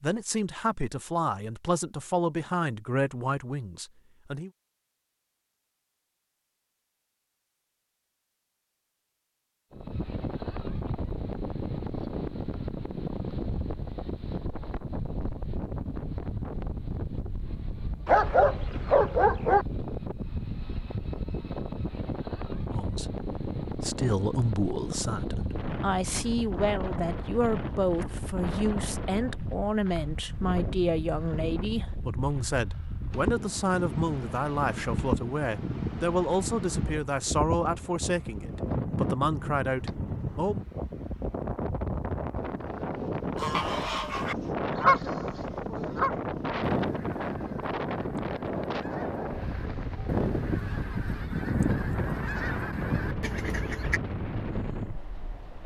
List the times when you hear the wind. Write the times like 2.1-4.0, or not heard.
9.7-55.6.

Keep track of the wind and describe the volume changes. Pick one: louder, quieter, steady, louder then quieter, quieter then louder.
steady.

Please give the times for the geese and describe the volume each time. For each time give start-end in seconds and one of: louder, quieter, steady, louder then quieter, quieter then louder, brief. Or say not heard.
43.4-54.0 quieter then louder.